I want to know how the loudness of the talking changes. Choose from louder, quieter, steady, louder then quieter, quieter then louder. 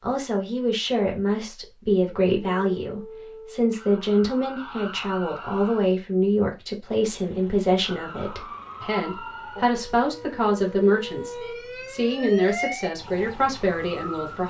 steady.